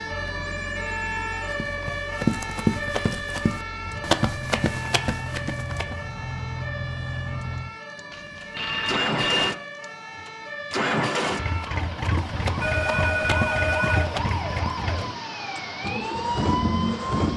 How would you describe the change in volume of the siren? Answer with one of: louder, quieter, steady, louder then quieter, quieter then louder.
quieter then louder.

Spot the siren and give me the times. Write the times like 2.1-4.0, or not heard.
0.0-17.3.